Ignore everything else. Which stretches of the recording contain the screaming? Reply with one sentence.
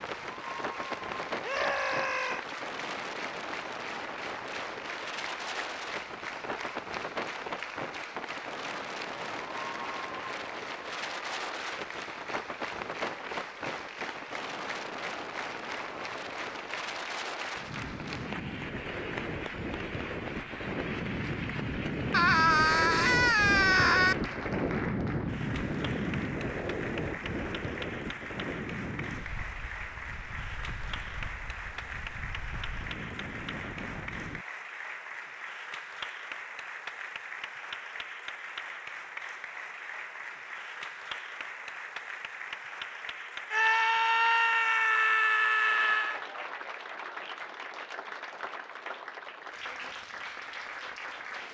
You can hear the screaming from 1.4 to 2.5 s, from 22.1 to 24.1 s and from 43.5 to 46.2 s.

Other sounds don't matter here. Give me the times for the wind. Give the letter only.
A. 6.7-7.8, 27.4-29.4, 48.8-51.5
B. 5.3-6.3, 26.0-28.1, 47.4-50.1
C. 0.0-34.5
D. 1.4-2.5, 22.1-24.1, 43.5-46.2
C.